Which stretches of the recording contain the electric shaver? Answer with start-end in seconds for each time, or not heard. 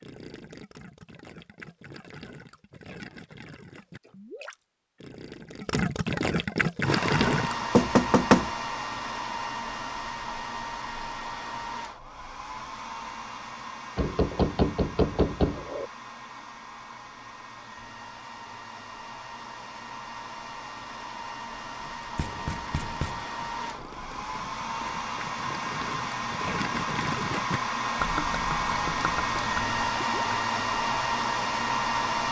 not heard.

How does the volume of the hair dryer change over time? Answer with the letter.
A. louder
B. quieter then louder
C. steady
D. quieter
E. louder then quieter
B.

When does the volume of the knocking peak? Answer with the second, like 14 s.
8 s.